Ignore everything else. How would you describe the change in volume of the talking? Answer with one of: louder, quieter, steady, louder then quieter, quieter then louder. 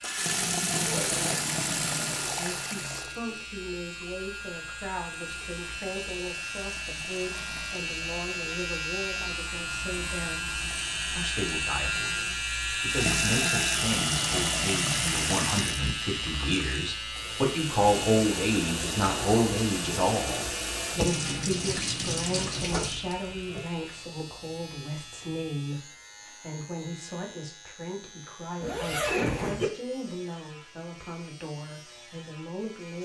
louder then quieter.